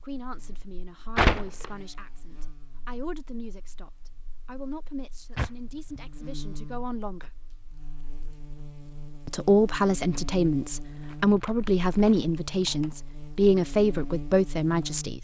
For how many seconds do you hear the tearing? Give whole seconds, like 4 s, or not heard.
3 s.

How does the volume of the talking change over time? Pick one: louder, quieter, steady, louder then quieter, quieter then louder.
louder.